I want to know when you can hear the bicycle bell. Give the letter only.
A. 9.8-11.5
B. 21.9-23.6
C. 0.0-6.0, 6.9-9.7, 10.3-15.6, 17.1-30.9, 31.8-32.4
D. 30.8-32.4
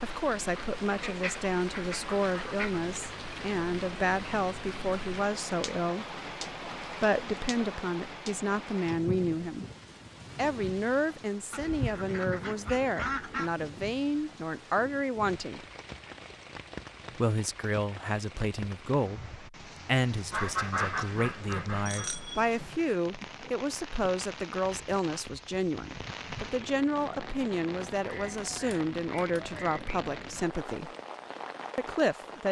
B.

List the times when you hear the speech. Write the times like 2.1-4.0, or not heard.
0.0-6.0, 6.9-9.7, 10.3-15.6, 17.1-30.9, 31.8-32.4.